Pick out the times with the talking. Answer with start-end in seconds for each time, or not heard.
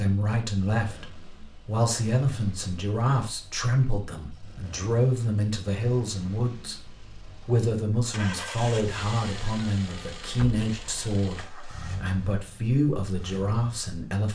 0.0-14.3.